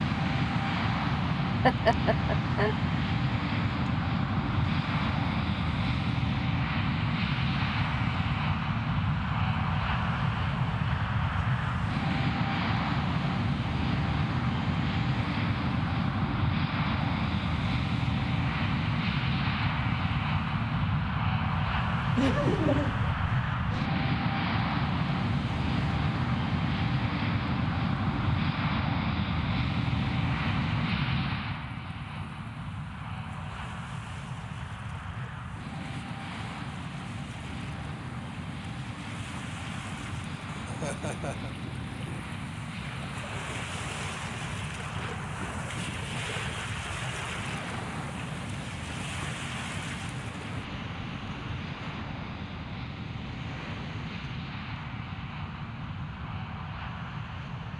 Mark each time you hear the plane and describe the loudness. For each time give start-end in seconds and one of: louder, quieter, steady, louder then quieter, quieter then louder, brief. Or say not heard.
0.0-57.7 quieter.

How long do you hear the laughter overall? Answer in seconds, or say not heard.
4 s.